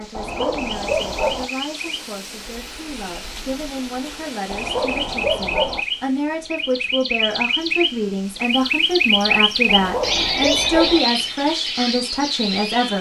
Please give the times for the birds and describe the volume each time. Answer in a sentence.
You can hear the birds from 0.2 to 12.9 s, getting louder.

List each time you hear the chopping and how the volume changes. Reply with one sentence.
The chopping can't be heard in this clip.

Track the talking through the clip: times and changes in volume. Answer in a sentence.
You can hear the talking from 0.0 to 12.9 s, getting louder.